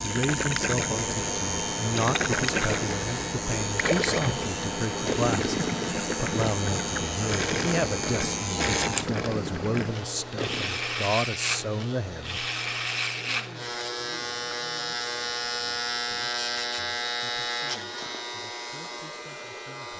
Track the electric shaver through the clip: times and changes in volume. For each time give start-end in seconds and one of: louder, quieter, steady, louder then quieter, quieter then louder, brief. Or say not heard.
0.0-19.9 steady.